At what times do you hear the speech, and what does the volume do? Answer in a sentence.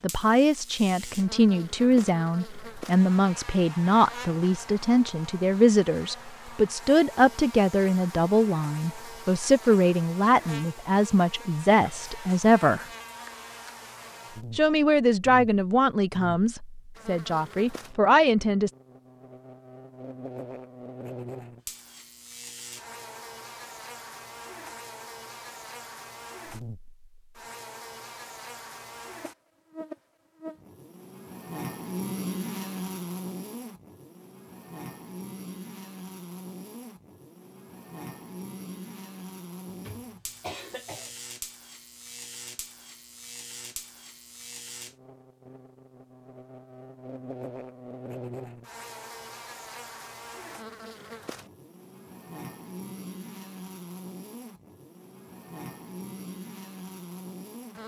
The speech can be heard from 0.0 to 12.8 s, at a steady volume; and from 14.6 to 18.7 s, getting quieter then louder.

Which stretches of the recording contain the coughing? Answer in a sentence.
You can hear the coughing from 39.6 to 41.1 s.